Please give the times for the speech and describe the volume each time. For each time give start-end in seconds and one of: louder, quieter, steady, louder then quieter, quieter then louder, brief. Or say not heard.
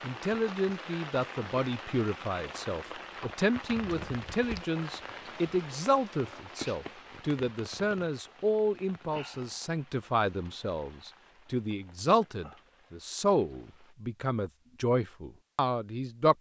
0.0-16.3 steady.